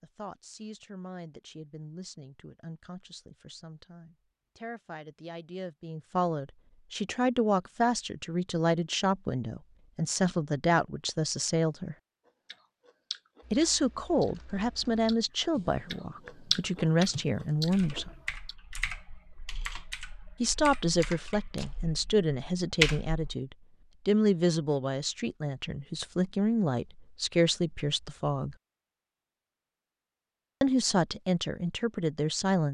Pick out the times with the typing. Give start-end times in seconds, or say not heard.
13.4-23.4.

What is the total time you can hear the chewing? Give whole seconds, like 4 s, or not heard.
6 s.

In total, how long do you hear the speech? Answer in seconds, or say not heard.
27 s.